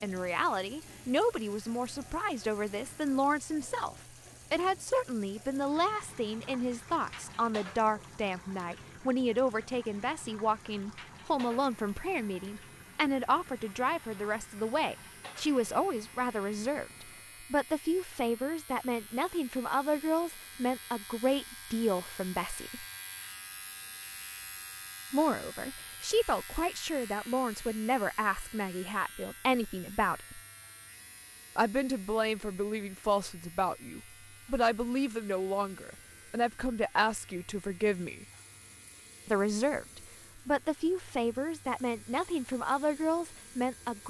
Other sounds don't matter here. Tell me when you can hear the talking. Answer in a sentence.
You can hear the talking from 0.0 to 22.9 s, from 25.1 to 30.4 s, from 31.6 to 38.2 s and from 39.2 to 44.0 s.